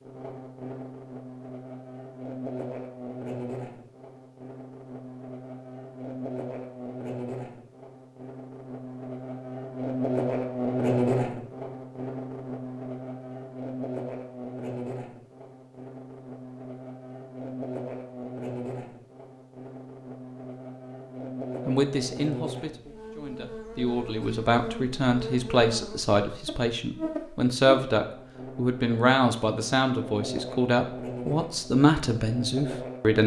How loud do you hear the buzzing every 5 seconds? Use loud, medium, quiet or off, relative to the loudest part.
medium, medium, loud, medium, medium, medium, medium.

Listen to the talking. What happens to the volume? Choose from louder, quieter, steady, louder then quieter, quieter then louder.
louder.